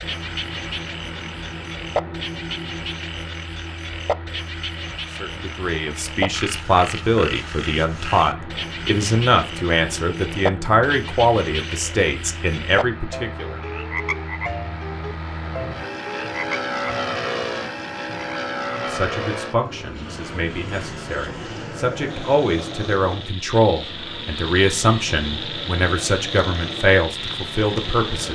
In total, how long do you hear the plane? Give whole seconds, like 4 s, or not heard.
28 s.